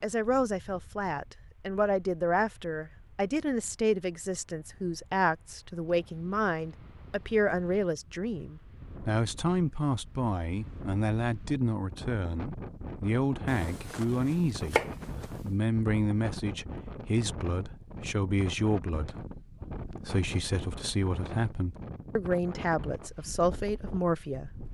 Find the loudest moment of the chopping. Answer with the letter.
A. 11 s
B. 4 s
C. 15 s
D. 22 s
C.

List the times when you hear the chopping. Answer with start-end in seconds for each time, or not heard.
13.4-15.5.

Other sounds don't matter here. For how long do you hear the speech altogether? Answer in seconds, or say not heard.
24 s.